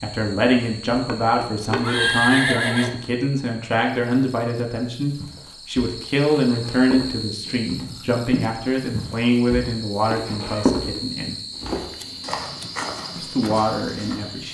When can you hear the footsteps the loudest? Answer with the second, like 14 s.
11 s.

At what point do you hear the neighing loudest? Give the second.
2 s.